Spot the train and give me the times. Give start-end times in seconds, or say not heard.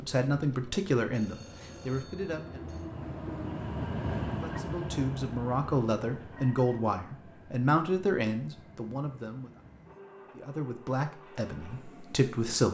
0.0-12.6.